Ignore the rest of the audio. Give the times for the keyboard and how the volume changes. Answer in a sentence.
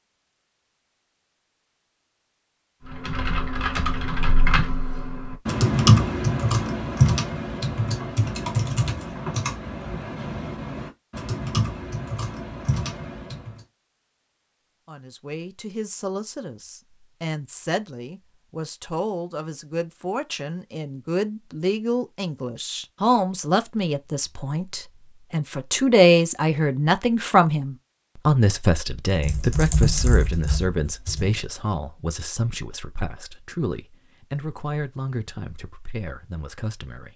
The keyboard can be heard from 2.9 to 13.7 s, getting louder then quieter; and briefly from 29.1 to 31.4 s.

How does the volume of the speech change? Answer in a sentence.
The volume of the speech goes up, then down.